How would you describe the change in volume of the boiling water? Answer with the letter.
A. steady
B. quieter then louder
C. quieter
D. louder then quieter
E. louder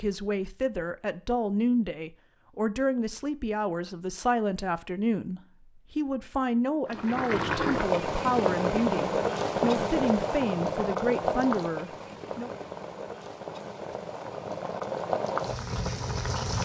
B.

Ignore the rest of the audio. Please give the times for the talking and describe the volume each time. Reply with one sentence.
The talking can be heard from 0.0 to 12.5 s, at a steady volume.